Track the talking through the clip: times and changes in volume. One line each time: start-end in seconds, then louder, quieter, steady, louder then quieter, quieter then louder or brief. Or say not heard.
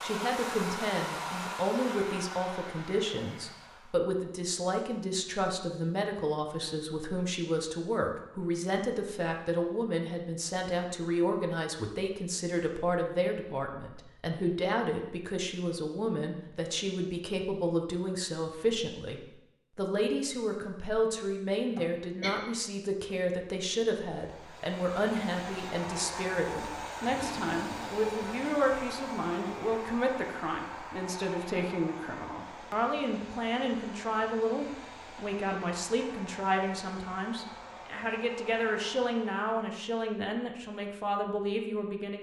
0.0-42.1 steady.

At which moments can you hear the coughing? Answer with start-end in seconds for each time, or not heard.
21.8-22.4.